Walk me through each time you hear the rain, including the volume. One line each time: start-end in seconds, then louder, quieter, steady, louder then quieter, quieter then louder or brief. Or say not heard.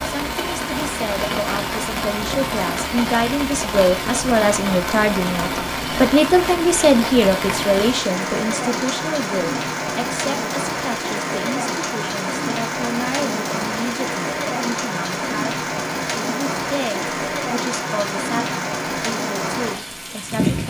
0.0-20.6 steady.